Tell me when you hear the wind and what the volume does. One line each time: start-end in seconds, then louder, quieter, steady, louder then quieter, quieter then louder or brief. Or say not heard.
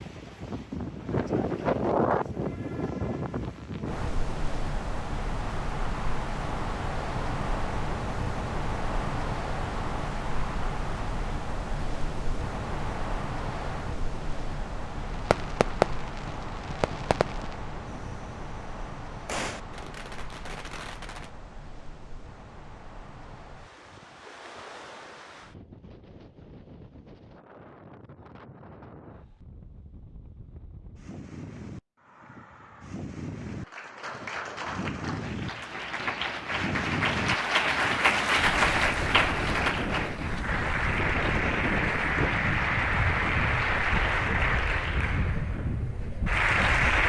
0.0-47.0 quieter then louder.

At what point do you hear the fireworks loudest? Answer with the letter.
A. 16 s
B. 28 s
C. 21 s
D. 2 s
A.